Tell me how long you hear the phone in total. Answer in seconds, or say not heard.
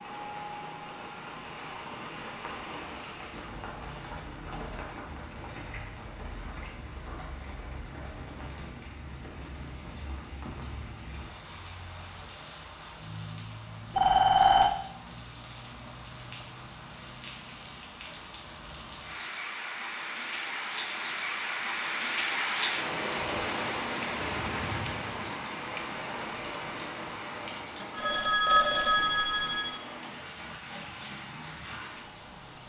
3 s.